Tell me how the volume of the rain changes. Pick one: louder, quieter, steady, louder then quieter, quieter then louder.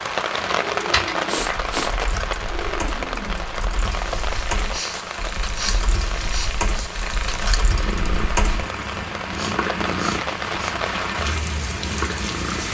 quieter then louder.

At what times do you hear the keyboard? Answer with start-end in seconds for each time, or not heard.
0.6-8.6.